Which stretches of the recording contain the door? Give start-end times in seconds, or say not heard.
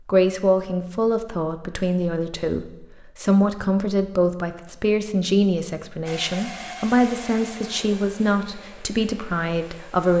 not heard.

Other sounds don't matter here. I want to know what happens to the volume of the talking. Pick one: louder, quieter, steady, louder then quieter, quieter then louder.
steady.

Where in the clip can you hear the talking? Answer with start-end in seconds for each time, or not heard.
0.1-10.1.